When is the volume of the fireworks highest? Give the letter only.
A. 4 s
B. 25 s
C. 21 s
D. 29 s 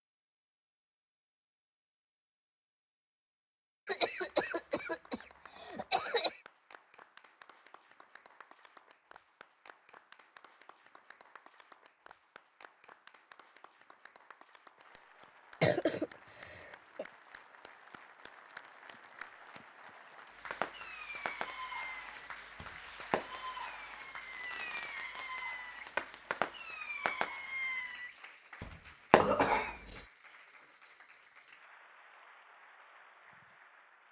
D.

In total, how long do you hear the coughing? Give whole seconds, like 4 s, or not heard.
5 s.